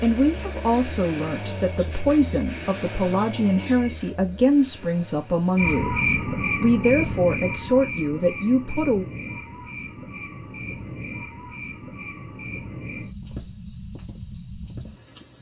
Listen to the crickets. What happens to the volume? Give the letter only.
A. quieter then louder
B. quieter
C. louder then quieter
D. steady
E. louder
C.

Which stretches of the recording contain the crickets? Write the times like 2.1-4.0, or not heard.
0.0-15.3.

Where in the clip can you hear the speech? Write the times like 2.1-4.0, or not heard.
0.0-9.1.